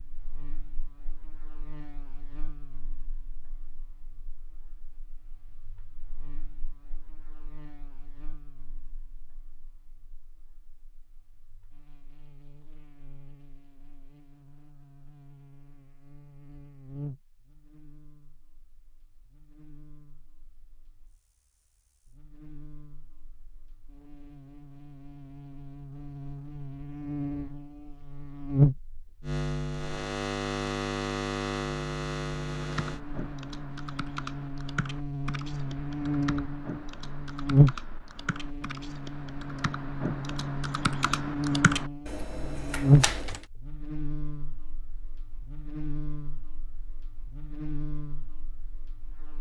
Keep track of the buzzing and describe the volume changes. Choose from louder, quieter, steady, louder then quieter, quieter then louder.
louder.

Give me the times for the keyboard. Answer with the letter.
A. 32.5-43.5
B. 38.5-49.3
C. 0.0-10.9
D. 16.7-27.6
A.